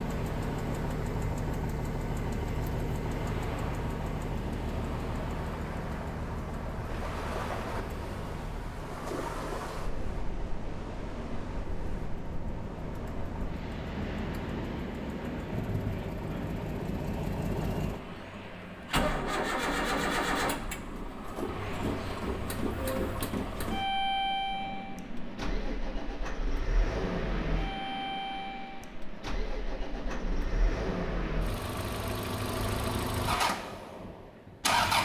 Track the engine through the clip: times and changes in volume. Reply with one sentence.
You can hear the engine from 0.0 to 35.0 s, getting quieter then louder.